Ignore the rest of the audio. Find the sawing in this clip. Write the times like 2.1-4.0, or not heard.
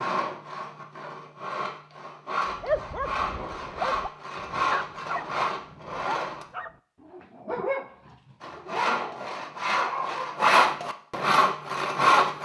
0.0-6.5, 8.4-12.4.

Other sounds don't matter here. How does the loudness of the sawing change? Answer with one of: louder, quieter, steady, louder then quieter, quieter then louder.
louder.